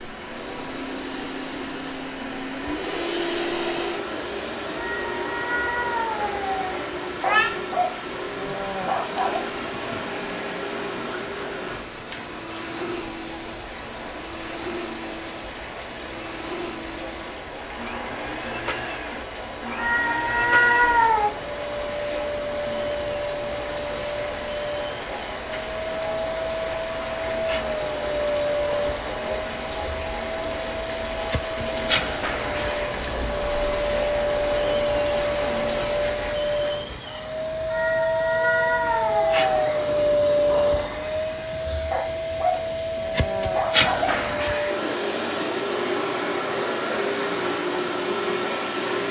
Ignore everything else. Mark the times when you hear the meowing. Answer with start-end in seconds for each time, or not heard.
4.8-7.5, 19.8-21.3, 37.7-39.9.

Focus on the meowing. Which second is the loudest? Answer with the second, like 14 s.
21 s.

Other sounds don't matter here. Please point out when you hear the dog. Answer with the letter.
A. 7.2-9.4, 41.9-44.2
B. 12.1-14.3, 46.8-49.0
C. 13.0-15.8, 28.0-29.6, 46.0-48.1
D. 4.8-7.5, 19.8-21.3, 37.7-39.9
A.